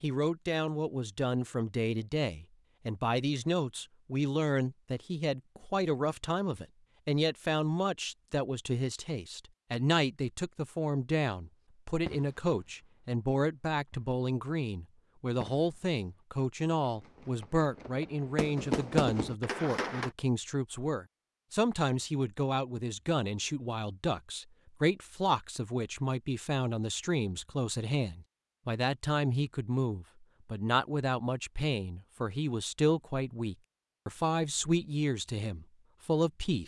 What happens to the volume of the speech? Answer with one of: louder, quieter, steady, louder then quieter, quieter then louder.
steady.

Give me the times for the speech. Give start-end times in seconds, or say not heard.
0.0-36.6.